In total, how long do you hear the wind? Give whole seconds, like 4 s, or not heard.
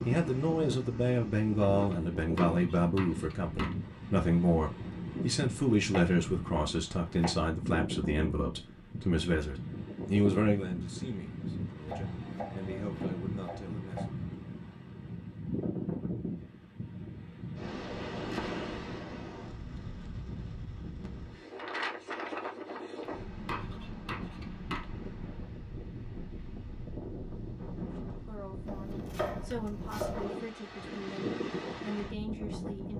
33 s.